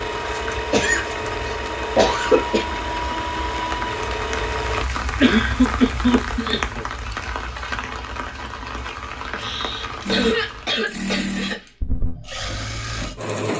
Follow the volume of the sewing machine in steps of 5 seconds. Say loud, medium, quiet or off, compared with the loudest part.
loud, off, loud.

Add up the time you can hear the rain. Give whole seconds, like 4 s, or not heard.
11 s.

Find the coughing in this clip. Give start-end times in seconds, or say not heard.
0.7-2.6, 5.2-6.8, 9.3-11.7.